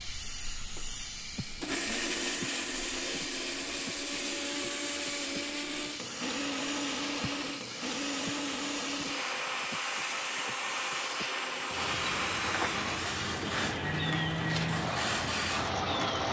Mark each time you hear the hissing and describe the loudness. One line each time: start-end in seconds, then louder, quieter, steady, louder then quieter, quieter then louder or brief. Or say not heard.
0.0-16.2 louder.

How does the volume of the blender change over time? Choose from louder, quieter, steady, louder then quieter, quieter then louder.
steady.